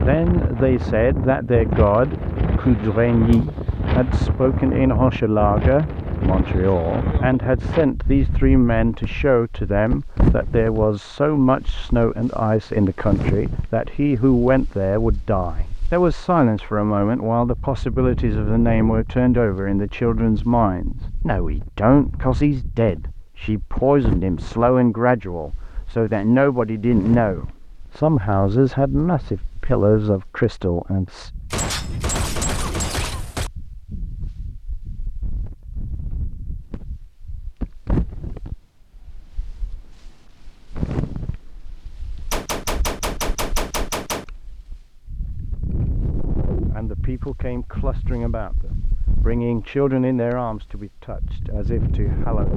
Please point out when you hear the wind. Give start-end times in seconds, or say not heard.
0.0-52.5.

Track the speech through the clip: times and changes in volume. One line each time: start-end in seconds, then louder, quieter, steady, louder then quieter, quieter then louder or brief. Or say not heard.
0.0-31.3 steady
46.7-52.5 louder then quieter.